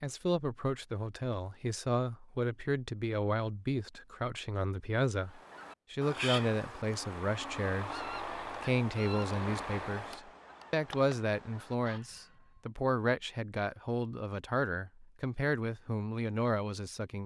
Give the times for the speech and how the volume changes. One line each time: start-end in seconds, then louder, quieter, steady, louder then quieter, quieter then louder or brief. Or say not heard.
0.0-17.2 steady.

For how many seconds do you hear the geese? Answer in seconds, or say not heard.
7 s.